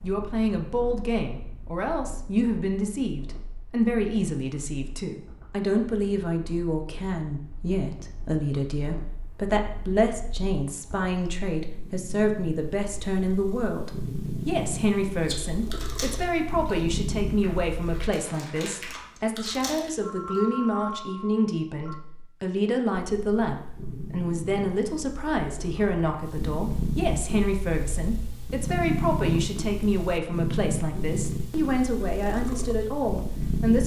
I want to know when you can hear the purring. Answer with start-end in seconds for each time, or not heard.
0.0-18.1, 22.9-33.8.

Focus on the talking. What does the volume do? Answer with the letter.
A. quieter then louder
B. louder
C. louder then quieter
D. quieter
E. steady
E.